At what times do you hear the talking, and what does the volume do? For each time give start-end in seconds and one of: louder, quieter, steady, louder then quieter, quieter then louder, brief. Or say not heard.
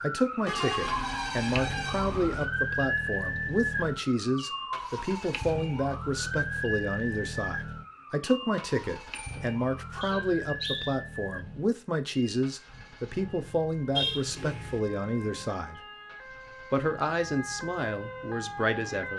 0.0-15.8 steady
16.7-19.1 brief.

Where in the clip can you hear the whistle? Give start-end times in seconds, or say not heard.
10.0-10.9.